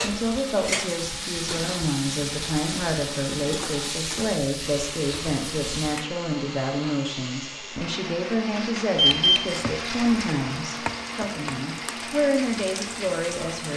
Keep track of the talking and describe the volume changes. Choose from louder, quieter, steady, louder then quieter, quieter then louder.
steady.